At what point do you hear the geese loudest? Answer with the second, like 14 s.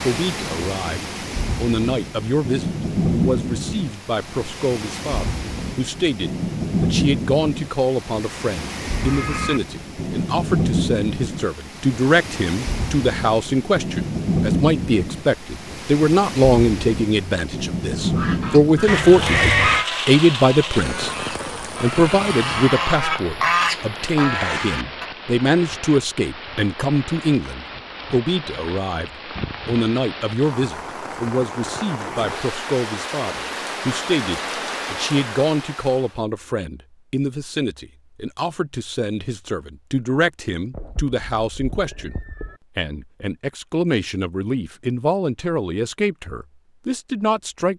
24 s.